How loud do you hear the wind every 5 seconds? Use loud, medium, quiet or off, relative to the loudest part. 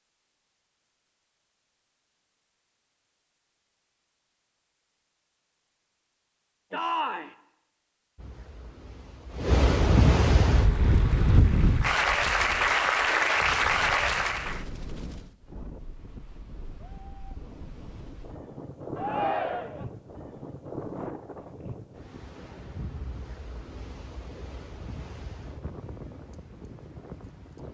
off, loud, loud, quiet, quiet, quiet.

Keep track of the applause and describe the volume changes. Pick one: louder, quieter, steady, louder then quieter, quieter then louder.
louder.